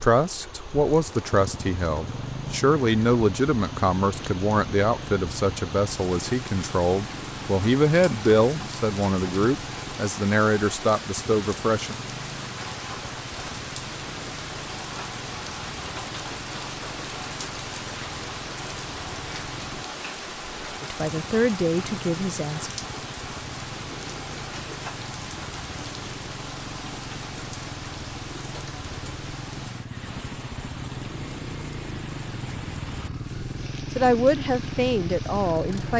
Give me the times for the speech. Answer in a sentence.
The speech can be heard from 0.0 to 11.9 s, from 20.8 to 22.7 s and from 34.0 to 35.9 s.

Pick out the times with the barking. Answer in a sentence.
The barking can't be heard in this clip.